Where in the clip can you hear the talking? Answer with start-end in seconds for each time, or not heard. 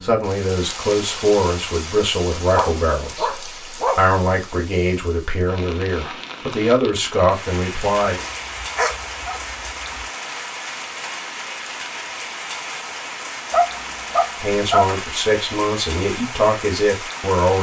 0.0-8.2, 14.4-17.5.